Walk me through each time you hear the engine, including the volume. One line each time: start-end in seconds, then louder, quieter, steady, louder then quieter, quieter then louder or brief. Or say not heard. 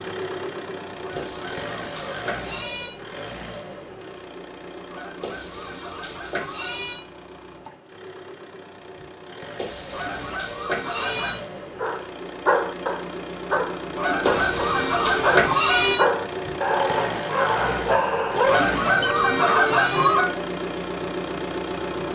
0.0-22.1 quieter then louder.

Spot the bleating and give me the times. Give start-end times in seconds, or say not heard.
1.1-2.9, 5.2-7.0, 9.6-11.3, 14.2-16.0, 18.4-20.1.